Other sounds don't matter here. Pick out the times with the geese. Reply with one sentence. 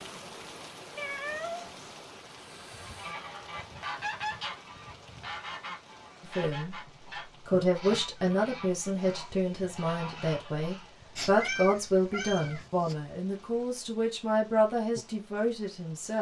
You can hear the geese from 2.4 to 10.9 s.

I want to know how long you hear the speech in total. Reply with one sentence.
The speech can be heard for 9 seconds in total.